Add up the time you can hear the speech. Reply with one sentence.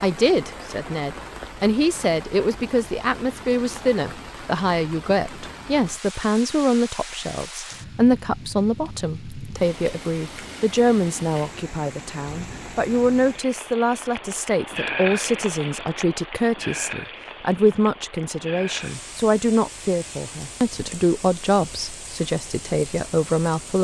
The speech can be heard for 24 seconds in total.